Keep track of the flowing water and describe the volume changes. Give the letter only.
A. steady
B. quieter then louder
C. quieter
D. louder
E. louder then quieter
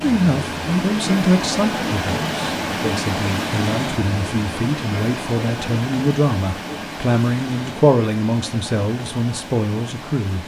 C.